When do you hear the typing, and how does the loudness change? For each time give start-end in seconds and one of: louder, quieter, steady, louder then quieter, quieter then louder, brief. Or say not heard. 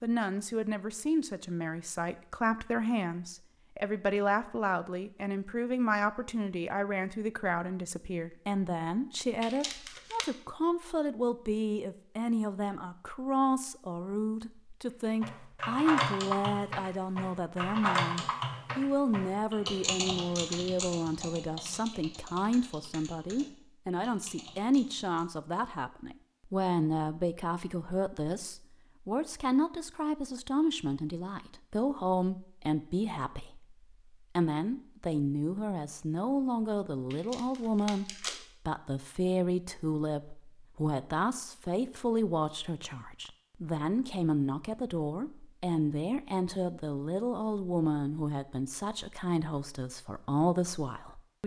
15.2-25.2 quieter.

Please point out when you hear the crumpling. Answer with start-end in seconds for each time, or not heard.
9.4-10.3, 37.1-38.5.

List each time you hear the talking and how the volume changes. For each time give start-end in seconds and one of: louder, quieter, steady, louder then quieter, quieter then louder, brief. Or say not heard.
0.0-51.4 steady.